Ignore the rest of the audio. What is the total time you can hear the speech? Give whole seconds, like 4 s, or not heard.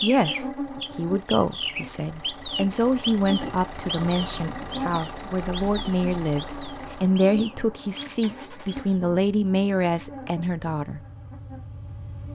11 s.